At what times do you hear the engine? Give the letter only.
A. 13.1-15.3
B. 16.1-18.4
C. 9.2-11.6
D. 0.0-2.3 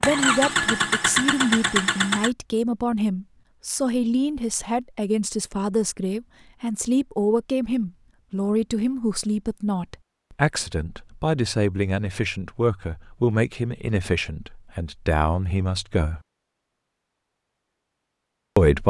D.